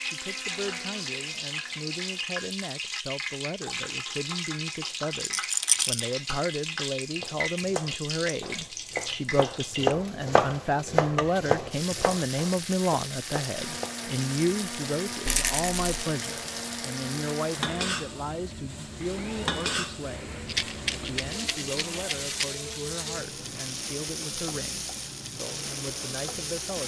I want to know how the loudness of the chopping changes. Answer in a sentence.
The volume of the chopping goes up, then down.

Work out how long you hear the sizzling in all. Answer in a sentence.
The sizzling can be heard for 27 seconds in total.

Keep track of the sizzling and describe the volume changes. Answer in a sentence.
The volume of the sizzling stays about the same.